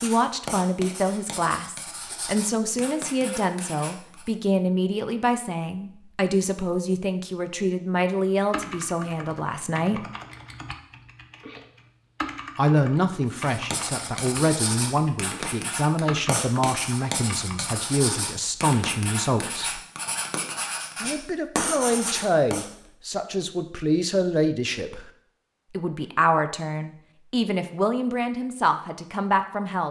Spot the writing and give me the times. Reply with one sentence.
You can hear the writing from 0.0 to 4.3 s and from 13.3 to 22.6 s.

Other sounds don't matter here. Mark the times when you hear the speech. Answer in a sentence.
The speech can be heard from 0.0 to 10.1 s, from 12.6 to 19.8 s, from 21.0 to 25.1 s and from 25.7 to 29.8 s.